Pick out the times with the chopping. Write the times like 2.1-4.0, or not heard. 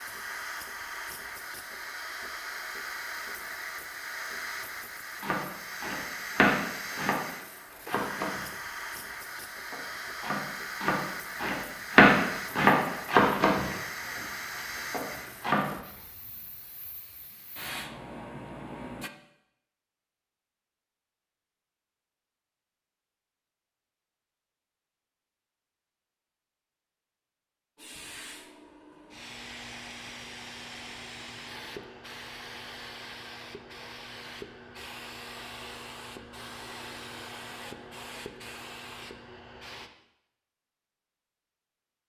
5.2-8.6, 9.3-15.7.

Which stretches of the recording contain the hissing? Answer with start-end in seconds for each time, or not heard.
0.0-19.1, 27.8-39.9.